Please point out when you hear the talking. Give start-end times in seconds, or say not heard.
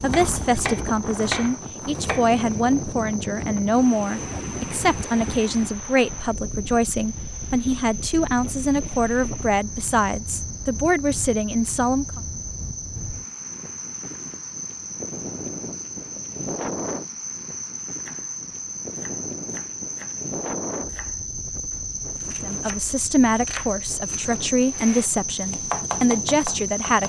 0.0-12.2, 22.4-27.0.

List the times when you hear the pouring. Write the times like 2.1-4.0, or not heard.
not heard.